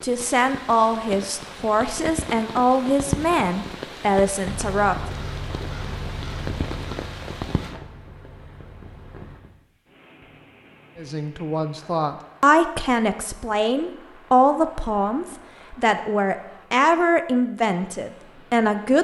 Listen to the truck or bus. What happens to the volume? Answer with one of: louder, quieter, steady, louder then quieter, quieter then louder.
quieter.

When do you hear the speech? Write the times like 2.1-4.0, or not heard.
0.0-5.0, 10.9-19.0.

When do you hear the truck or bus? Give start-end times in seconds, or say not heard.
4.4-9.4.